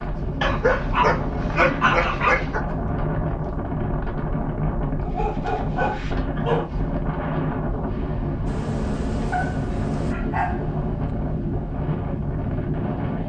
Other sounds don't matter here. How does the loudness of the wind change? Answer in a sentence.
The volume of the wind stays about the same.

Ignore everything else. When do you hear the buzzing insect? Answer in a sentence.
The buzzing insect can be heard from 8.4 to 10.2 s.